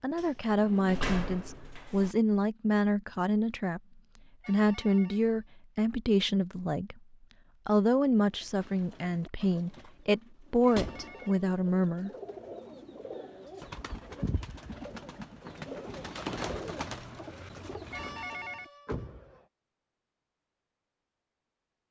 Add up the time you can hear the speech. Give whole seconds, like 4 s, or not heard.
11 s.